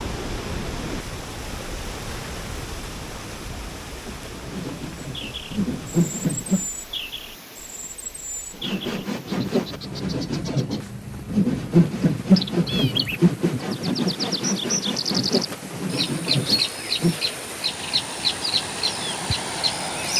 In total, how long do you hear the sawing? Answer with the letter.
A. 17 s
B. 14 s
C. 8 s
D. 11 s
D.